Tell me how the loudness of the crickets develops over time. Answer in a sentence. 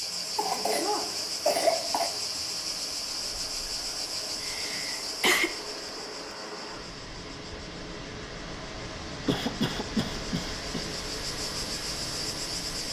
The loudness of the crickets goes down, then up.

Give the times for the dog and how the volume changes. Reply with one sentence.
The dog can't be heard in this clip.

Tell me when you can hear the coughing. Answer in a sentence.
You can hear the coughing from 0.3 to 2.1 s, from 4.4 to 5.5 s and from 9.2 to 10.8 s.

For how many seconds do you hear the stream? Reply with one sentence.
The stream can be heard for 13 seconds in total.